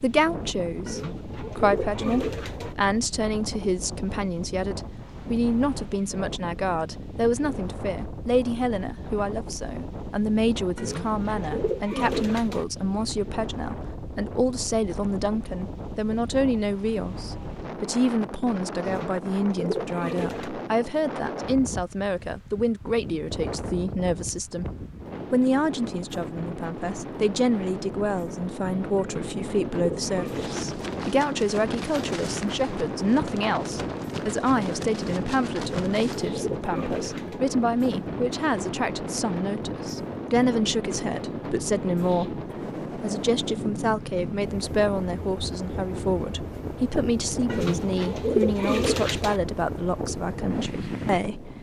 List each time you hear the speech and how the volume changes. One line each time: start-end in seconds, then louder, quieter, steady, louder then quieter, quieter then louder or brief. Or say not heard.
0.0-51.5 steady.